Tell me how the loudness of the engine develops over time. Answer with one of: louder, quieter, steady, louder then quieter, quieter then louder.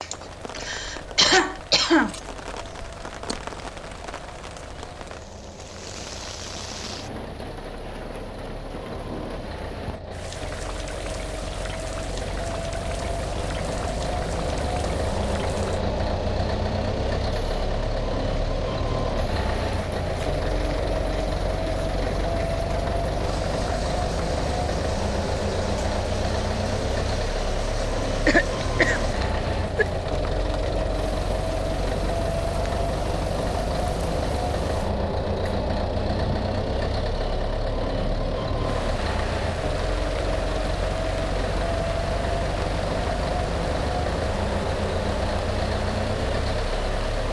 louder.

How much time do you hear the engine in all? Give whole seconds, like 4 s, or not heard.
47 s.